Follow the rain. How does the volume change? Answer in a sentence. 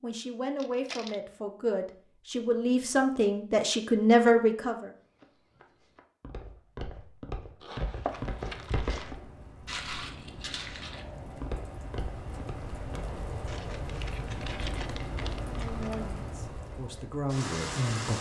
The volume of the rain goes up.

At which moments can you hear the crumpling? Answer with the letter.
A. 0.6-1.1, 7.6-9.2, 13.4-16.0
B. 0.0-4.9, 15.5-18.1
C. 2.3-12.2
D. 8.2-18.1
A.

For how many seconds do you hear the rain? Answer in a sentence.
The rain can be heard for 10 seconds in total.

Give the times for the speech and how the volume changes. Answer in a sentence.
You can hear the speech from 0.0 to 4.9 s, getting louder; and briefly from 15.5 to 18.1 s.